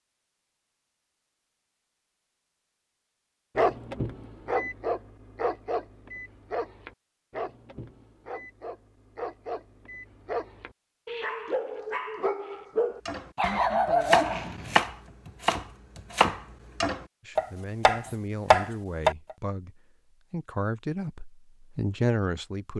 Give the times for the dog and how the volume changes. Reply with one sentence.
You can hear the dog from 3.5 to 14.8 s, getting quieter then louder.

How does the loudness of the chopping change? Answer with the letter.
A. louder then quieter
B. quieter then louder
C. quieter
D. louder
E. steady
D.